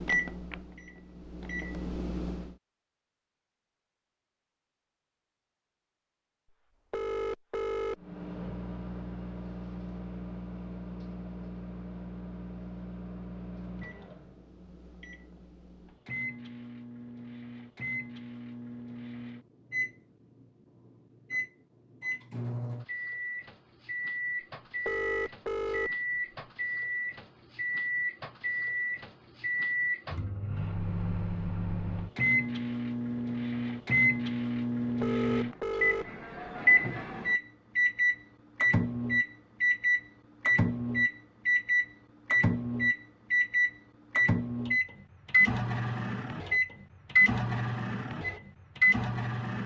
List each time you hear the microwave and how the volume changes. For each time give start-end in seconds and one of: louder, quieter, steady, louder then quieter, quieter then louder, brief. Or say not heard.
0.0-2.5 brief
8.0-49.6 louder.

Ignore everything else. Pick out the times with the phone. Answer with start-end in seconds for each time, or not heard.
6.9-8.0, 24.9-25.9, 35.0-36.1.